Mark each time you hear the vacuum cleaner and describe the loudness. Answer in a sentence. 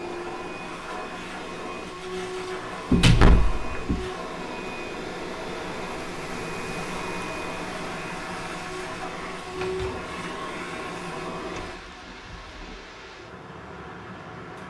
The vacuum cleaner can be heard from 0.0 to 14.6 s, getting quieter.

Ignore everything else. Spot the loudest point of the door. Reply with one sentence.
The loudest moment of the door is at 3 seconds.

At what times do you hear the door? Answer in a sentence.
The door can be heard from 2.9 to 4.1 s and from 9.5 to 11.8 s.